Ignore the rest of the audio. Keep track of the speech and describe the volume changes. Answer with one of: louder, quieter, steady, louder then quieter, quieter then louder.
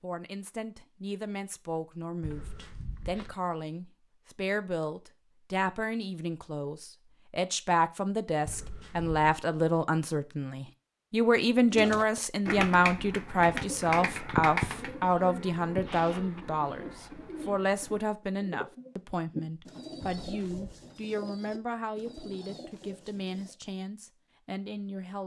louder then quieter.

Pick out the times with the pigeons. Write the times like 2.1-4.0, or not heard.
11.7-23.6.